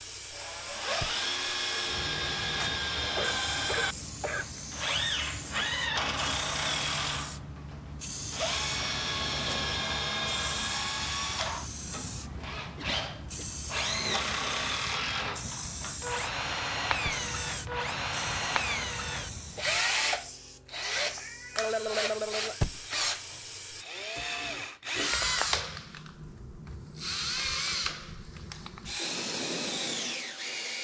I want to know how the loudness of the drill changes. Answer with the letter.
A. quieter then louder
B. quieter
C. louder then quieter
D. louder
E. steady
E.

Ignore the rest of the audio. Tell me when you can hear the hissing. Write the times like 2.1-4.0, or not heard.
0.0-23.9.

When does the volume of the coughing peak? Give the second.
22 s.